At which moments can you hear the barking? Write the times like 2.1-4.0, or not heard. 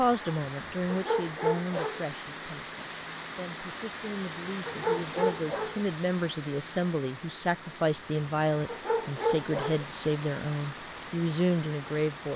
0.8-2.0, 4.7-5.8, 8.7-9.8.